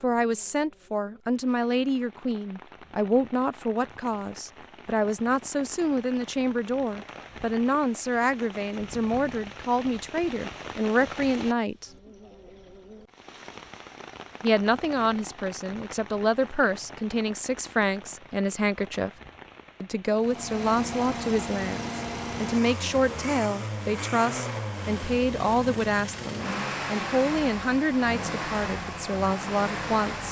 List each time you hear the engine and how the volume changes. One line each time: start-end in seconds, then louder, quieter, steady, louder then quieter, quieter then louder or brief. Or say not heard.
20.1-30.2 steady.